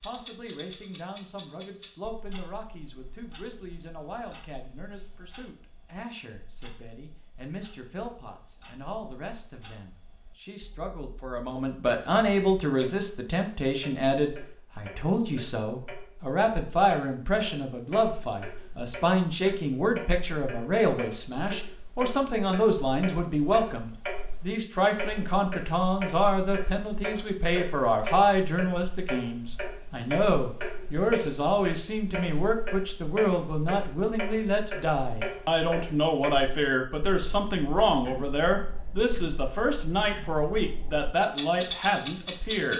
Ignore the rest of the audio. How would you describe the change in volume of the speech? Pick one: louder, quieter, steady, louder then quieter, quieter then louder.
louder.